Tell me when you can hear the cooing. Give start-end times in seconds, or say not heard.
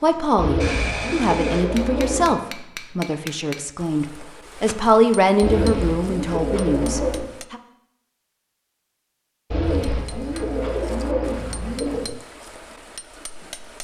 0.3-2.4, 5.4-7.2, 9.5-12.1.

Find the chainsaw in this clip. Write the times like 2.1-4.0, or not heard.
0.0-1.6.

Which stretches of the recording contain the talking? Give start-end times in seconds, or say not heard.
0.0-7.6.